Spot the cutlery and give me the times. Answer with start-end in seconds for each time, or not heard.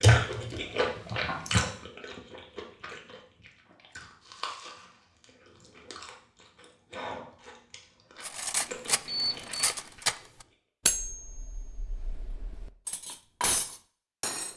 8.2-14.5.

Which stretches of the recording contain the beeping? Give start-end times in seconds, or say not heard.
9.1-9.8.